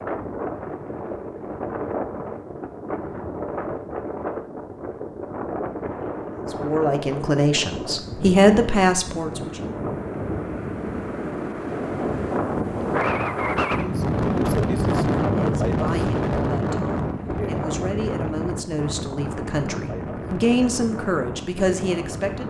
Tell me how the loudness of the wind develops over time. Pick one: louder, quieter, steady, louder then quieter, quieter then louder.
louder then quieter.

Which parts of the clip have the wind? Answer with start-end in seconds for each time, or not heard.
0.0-22.4.